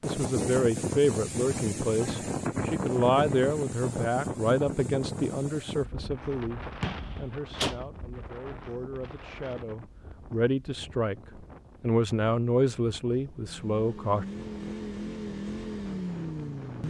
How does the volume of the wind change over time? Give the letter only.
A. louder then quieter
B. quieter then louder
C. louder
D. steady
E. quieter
E.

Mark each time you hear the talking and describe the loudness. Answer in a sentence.
The talking can be heard from 0.0 to 11.2 s, getting quieter then louder; and briefly from 11.8 to 14.2 s.